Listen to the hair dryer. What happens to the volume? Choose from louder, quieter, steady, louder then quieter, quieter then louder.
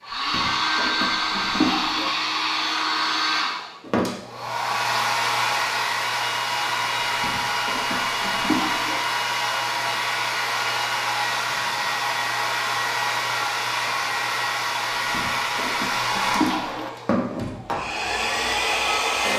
steady.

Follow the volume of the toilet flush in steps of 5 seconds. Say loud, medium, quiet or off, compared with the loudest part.
loud, loud, off, loud.